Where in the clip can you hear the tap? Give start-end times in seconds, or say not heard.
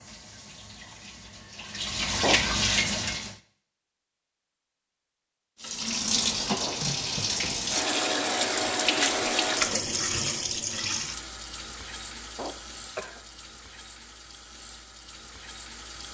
0.0-3.4, 5.6-16.0.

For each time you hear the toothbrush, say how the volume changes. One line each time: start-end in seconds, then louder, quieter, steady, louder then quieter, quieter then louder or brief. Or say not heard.
not heard.